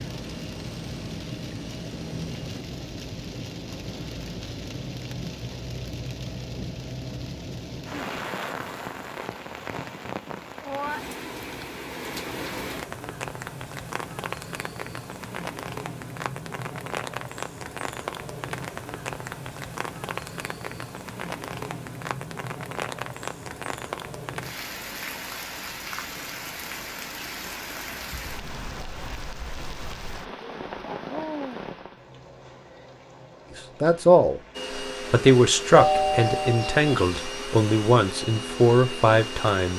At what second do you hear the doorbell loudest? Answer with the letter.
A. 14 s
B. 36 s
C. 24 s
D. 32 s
B.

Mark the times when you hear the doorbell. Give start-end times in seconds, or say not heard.
35.8-37.2.